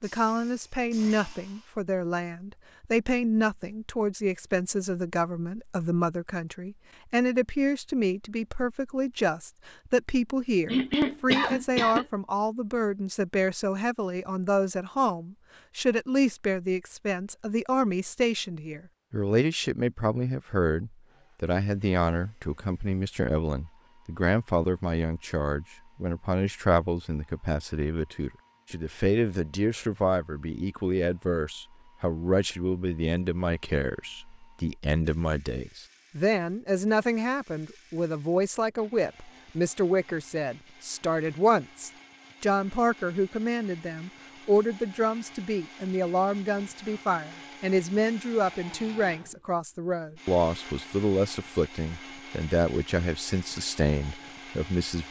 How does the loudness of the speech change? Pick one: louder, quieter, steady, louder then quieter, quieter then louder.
steady.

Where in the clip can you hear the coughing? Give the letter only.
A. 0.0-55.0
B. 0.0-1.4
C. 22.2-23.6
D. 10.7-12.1
D.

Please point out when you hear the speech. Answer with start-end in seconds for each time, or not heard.
0.0-55.0.